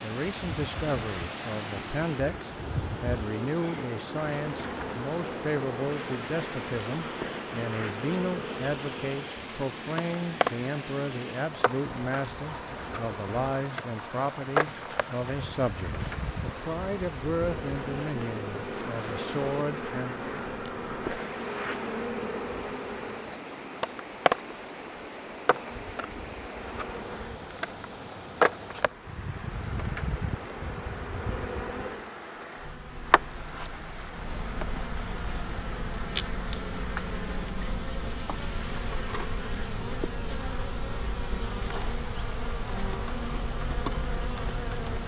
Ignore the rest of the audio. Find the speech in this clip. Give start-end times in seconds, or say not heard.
0.0-20.1.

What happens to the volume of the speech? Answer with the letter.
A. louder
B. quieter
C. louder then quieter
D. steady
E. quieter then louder
D.